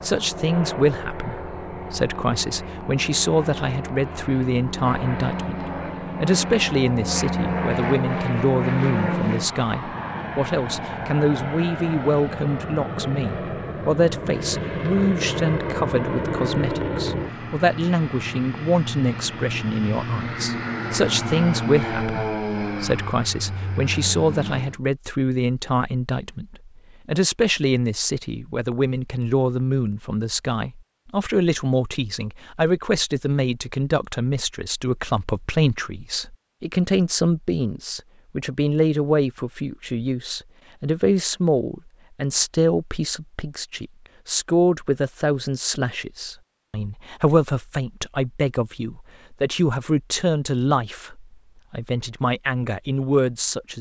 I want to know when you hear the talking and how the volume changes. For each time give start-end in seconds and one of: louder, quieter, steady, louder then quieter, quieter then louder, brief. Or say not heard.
0.0-53.7 steady.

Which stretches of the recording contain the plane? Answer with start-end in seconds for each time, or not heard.
0.0-24.8.